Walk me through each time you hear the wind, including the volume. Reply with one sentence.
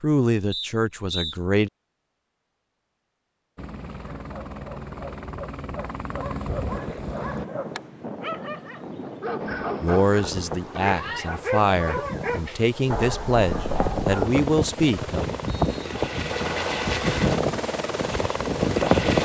You can hear the wind from 6.5 to 19.2 s, getting louder.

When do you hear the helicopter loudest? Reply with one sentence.
The volume of the helicopter peaks at 17 seconds.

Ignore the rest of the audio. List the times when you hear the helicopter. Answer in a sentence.
You can hear the helicopter from 3.5 to 7.5 s and from 9.3 to 19.2 s.